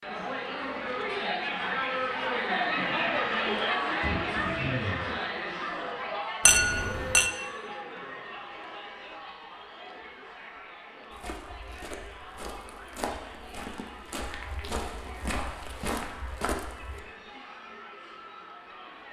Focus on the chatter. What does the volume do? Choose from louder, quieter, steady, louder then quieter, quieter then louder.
quieter.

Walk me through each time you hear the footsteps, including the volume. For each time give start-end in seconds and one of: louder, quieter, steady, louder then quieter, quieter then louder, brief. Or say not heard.
11.1-17.0 louder.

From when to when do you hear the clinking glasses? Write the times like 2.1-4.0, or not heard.
6.5-7.3.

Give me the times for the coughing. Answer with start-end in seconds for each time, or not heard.
4.0-5.2.